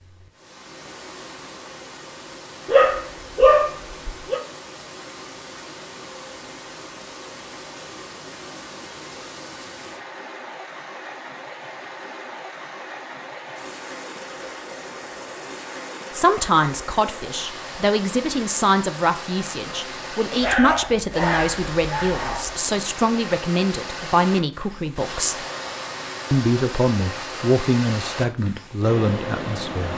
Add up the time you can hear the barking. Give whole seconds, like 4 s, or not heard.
4 s.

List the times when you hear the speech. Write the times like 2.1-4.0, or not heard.
16.1-25.4, 26.3-29.9.